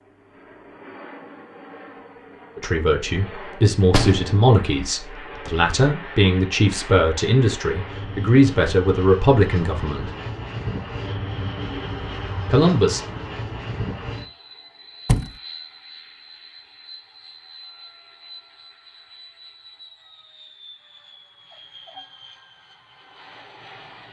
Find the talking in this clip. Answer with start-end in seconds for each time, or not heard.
2.5-10.1, 12.4-13.0.